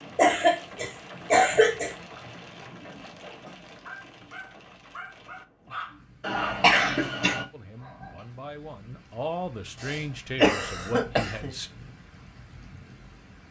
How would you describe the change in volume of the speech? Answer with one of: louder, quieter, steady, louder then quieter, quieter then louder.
louder.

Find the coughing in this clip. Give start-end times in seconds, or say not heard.
0.1-1.9, 6.2-7.5, 9.8-11.5.